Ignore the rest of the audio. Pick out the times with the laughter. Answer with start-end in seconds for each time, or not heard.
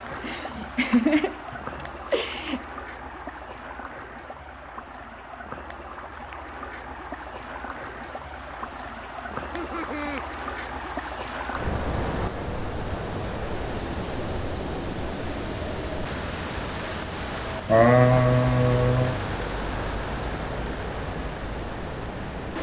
0.1-2.6, 9.4-10.2, 17.6-19.2.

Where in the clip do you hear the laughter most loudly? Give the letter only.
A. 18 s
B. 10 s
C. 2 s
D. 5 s
A.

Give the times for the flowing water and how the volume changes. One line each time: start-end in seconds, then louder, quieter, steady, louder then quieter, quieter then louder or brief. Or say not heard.
0.0-22.5 louder.